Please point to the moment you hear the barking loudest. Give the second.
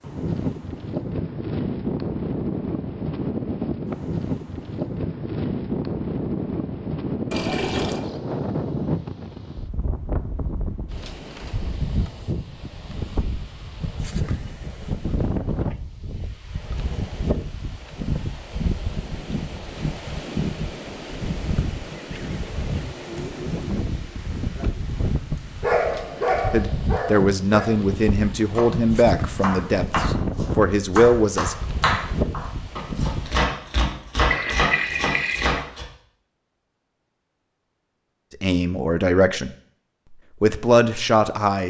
26 s.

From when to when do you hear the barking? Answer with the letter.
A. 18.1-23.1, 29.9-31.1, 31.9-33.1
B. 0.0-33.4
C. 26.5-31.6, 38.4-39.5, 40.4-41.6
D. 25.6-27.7
D.